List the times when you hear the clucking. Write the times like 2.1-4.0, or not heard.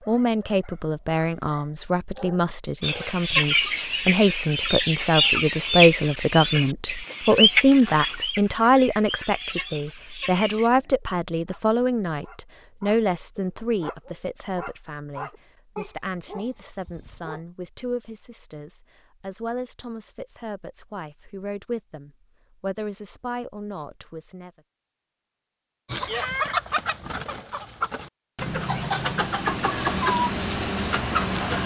2.8-10.7, 25.9-31.6.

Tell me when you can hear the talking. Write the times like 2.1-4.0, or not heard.
0.1-24.5.